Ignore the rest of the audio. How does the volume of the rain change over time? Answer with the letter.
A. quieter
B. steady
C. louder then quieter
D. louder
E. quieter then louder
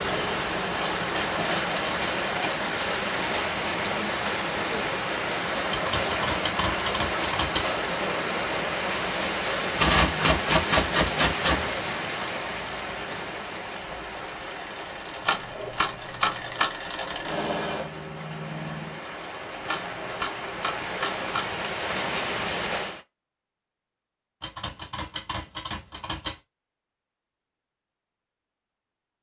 E.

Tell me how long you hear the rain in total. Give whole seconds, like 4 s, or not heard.
23 s.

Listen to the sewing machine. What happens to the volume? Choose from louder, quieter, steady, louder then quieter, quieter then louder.
louder then quieter.